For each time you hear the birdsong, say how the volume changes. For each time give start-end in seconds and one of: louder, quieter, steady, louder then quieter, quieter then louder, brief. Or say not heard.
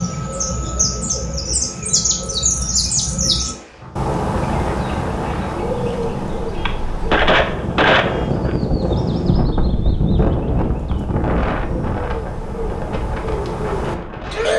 0.0-14.5 quieter then louder.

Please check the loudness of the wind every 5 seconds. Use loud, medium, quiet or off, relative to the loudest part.
medium, loud, loud.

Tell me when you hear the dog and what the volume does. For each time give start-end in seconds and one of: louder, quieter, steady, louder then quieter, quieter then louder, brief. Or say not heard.
not heard.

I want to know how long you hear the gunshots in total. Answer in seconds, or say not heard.
2 s.